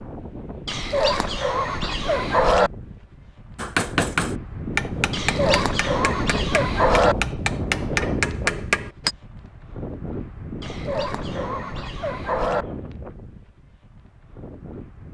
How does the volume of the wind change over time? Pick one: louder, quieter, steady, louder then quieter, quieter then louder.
louder then quieter.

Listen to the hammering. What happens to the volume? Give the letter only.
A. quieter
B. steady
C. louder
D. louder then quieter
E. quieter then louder
E.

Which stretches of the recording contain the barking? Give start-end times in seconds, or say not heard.
0.7-2.7, 5.1-7.2, 10.6-12.7.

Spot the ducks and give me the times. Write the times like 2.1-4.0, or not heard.
not heard.